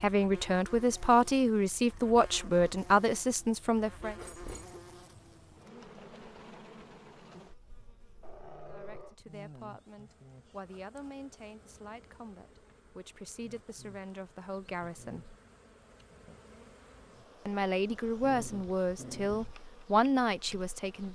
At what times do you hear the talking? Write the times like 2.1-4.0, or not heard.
0.0-4.2, 8.7-15.3, 17.4-21.1.